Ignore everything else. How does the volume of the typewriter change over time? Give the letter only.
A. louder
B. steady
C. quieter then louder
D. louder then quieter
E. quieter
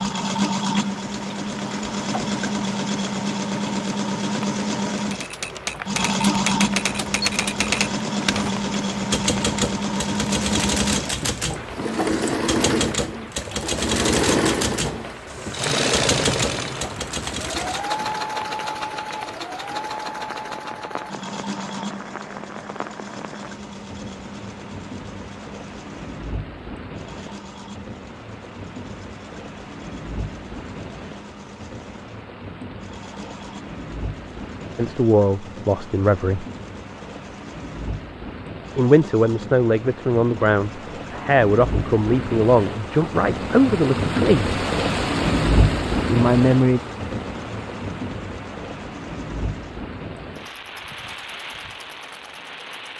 B.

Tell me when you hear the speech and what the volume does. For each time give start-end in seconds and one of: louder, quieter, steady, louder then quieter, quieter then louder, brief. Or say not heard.
34.8-36.5 brief
38.8-44.5 steady
46.1-46.8 brief.